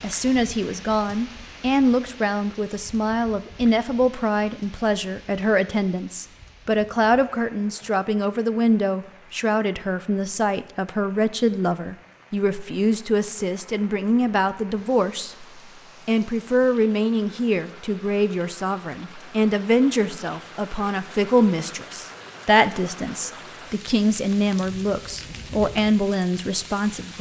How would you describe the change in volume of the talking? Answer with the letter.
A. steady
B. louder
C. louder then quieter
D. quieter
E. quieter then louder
A.